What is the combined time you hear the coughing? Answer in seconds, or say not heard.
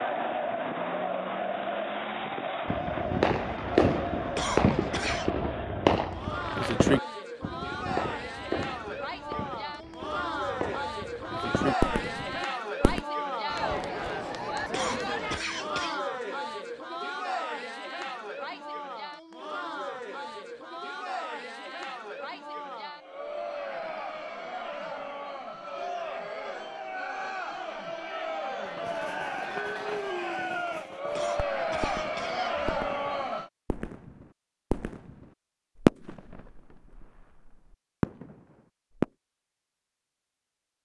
4 s.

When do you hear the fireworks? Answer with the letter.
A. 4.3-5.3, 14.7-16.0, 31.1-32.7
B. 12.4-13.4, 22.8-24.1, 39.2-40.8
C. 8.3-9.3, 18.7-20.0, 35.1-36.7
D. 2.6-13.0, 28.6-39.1
D.